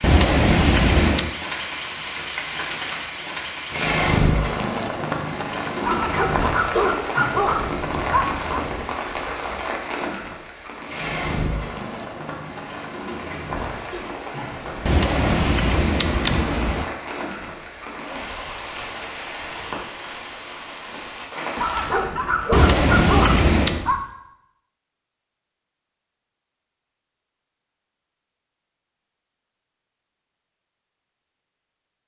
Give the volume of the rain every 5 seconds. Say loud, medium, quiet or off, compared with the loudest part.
loud, loud, medium, medium, medium, off, off.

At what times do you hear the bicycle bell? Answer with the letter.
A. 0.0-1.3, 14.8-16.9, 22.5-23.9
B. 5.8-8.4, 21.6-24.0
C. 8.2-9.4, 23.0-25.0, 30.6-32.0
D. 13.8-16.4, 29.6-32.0
A.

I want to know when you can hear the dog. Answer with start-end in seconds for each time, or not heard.
5.8-8.4, 21.6-24.0.